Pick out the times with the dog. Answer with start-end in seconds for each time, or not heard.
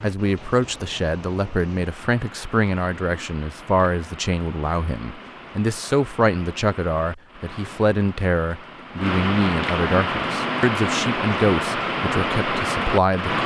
not heard.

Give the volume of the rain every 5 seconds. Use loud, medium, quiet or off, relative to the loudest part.
quiet, medium, loud.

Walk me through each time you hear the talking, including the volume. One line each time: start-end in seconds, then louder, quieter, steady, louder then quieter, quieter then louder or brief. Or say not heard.
0.0-13.4 steady.